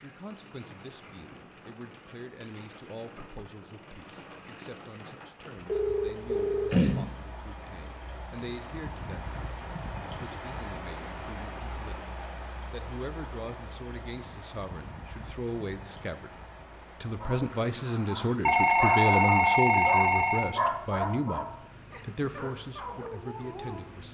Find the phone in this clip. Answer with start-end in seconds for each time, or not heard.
5.7-7.0, 18.4-20.4.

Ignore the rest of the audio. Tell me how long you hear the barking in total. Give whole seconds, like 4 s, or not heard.
7 s.